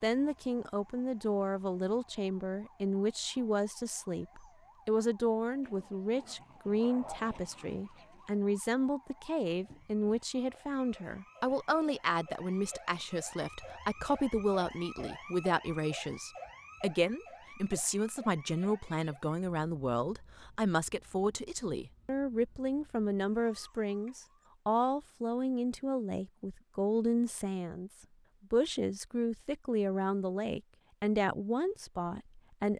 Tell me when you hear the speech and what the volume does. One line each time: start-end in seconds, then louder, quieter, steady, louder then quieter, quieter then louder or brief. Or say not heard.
0.0-32.7 steady.